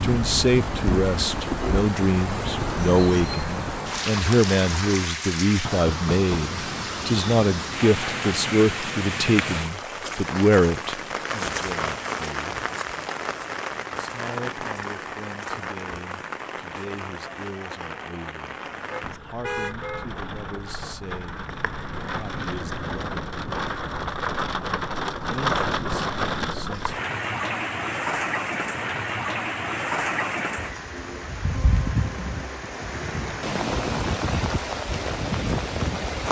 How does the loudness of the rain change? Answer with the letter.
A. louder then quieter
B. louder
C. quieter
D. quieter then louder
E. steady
D.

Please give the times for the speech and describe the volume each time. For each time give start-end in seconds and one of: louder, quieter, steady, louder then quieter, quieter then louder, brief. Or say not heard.
0.0-12.7 steady
13.9-23.2 steady
25.2-26.9 brief.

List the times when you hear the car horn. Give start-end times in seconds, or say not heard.
18.9-20.1.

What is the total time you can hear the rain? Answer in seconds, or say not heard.
36 s.